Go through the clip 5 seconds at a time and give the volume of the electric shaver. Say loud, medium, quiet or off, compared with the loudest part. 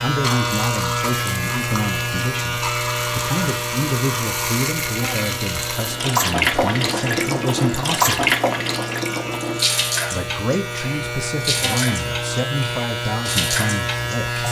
loud, medium, loud.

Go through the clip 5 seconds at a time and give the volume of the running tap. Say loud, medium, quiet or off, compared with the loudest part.
medium, loud, medium.